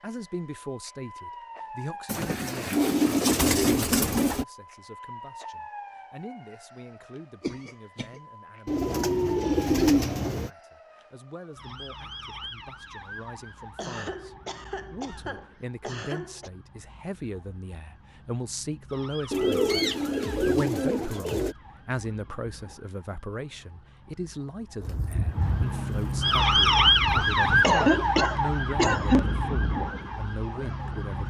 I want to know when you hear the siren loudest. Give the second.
27 s.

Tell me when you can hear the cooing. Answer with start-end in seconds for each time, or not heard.
2.0-4.5, 8.7-10.5, 19.3-21.6, 24.8-27.6.